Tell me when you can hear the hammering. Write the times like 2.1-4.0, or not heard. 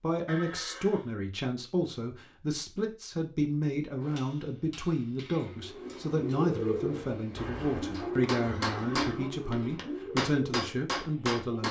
4.0-11.6.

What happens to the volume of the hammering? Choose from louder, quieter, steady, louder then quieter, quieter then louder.
louder.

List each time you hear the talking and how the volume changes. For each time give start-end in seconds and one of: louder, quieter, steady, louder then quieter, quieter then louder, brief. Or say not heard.
0.0-11.6 steady.